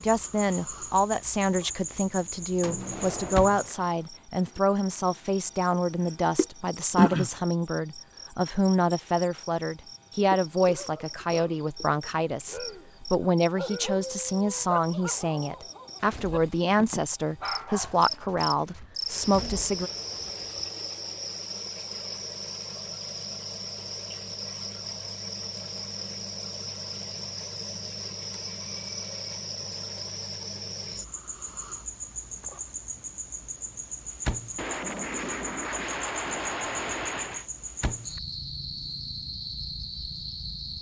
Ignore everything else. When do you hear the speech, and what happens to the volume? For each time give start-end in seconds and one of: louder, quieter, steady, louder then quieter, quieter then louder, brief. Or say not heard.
0.0-19.9 steady.